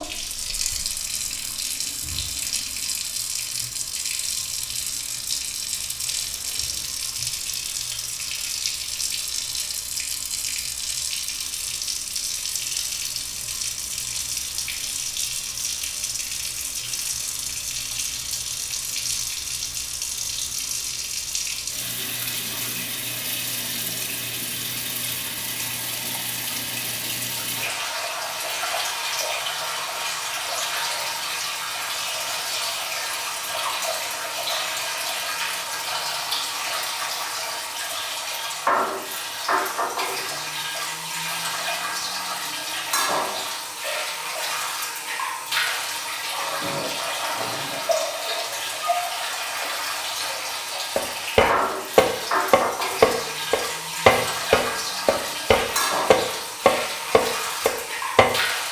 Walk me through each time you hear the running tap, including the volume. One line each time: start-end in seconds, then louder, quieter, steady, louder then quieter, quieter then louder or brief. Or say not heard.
0.0-58.6 steady.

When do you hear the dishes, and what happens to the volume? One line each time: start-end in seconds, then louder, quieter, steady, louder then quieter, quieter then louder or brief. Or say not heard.
not heard.